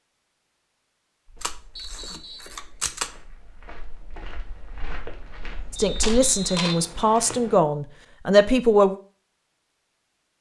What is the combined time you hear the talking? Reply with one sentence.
You can hear the talking for 3 seconds altogether.